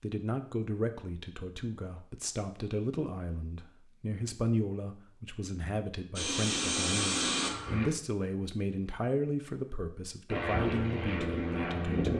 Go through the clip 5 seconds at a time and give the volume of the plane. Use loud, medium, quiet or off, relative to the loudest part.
off, loud, loud.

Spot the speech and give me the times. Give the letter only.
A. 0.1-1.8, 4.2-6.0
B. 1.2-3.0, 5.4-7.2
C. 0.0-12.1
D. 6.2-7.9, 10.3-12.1
C.